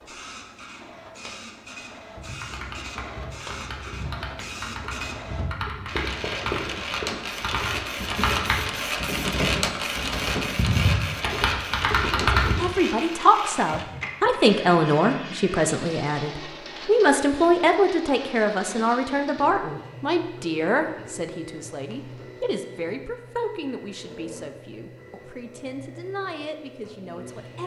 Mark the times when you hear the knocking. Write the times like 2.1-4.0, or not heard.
6.0-7.1.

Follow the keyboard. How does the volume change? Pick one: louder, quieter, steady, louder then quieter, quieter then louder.
louder.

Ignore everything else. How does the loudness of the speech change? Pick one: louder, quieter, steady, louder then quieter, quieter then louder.
quieter.